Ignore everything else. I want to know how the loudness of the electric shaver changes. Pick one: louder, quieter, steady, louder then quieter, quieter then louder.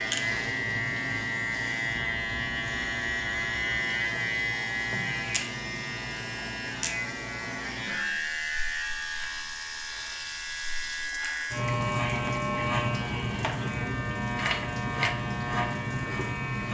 steady.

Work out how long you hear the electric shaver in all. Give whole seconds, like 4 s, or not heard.
17 s.